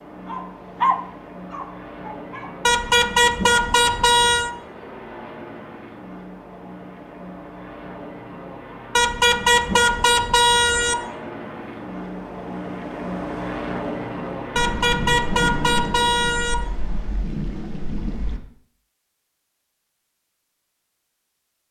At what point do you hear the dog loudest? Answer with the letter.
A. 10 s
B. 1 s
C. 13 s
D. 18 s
B.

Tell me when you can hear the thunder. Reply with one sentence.
The thunder can be heard from 14.6 to 18.4 s.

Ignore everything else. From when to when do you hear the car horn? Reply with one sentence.
The car horn can be heard from 2.6 to 4.5 s, from 8.9 to 10.9 s and from 14.6 to 16.6 s.